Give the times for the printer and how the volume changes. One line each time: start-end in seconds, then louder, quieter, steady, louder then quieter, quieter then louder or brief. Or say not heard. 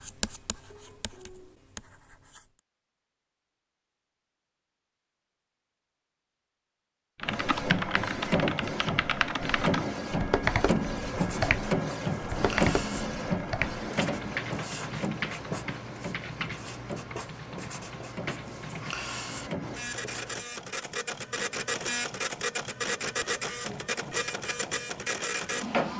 7.2-25.9 quieter then louder.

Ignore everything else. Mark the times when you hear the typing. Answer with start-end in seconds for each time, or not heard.
7.2-19.1.